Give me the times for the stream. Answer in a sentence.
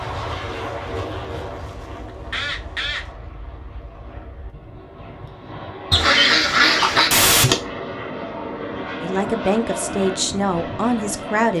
The stream can't be heard in this clip.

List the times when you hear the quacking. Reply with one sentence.
The quacking can be heard from 1.9 to 3.1 s and from 5.9 to 7.5 s.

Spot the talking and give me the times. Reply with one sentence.
You can hear the talking from 9.0 to 11.5 s.